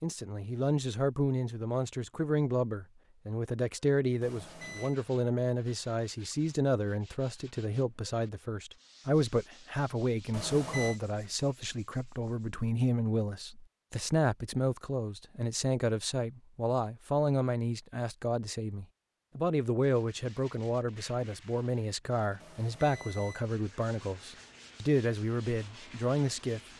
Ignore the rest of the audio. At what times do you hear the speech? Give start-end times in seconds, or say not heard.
0.0-26.6.